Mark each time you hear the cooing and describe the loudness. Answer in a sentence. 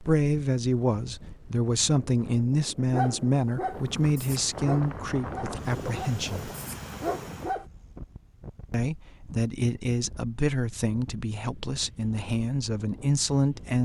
You can't hear the cooing here.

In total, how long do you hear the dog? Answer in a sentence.
You can hear the dog for 5 seconds altogether.